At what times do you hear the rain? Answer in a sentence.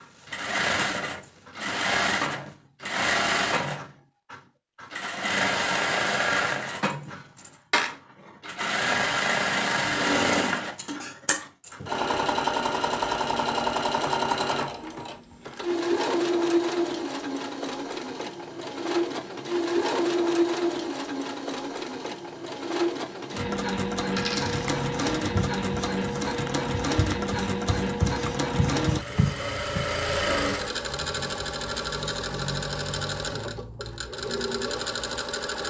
You can't hear the rain here.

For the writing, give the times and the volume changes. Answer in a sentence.
The writing can be heard from 24.4 to 29.9 s, getting quieter then louder.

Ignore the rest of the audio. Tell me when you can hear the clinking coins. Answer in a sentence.
The clinking coins can be heard from 24.1 to 24.8 s.